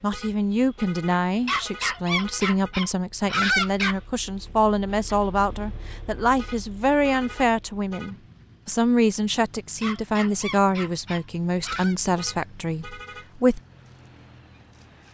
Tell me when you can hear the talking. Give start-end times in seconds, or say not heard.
0.0-13.6.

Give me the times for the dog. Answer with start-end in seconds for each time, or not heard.
1.4-4.0, 9.8-11.9.